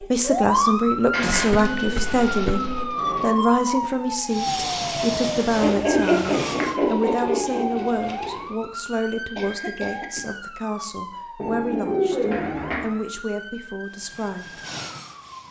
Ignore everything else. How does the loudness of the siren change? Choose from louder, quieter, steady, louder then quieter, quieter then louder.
quieter.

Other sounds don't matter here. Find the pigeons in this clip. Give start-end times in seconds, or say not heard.
1.1-3.4, 5.6-8.4, 11.3-12.9.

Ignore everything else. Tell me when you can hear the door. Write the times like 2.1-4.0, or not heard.
not heard.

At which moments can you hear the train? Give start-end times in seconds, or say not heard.
4.2-6.8, 13.8-15.4.